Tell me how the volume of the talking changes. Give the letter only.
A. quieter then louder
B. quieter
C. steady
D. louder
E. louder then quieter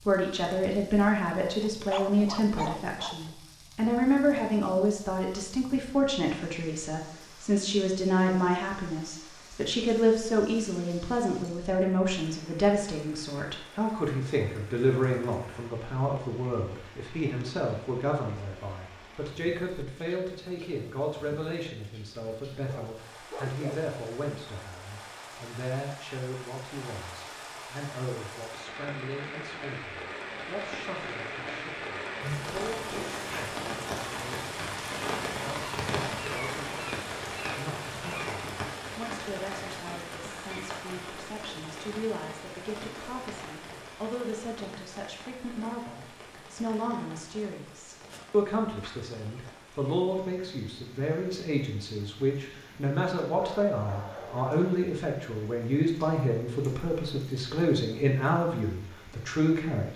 A.